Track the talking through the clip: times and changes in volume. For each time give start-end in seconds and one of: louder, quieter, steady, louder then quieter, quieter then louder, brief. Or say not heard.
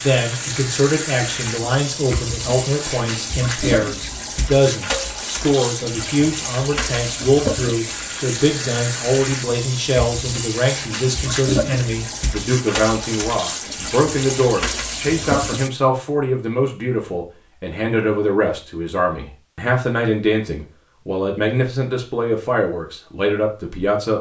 0.0-24.1 steady.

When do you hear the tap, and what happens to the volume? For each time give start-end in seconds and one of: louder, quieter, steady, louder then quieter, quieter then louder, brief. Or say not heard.
0.0-15.7 steady.